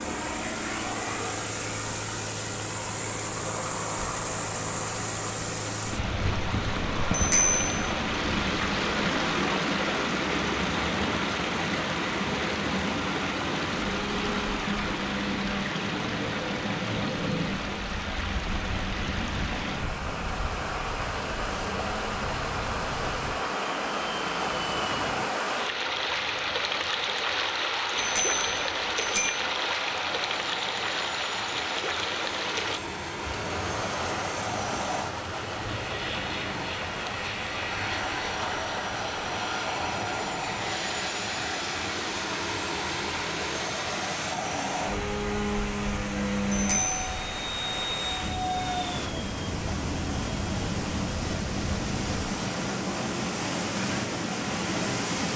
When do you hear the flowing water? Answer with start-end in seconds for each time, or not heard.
0.0-55.3.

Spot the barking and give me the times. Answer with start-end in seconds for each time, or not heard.
not heard.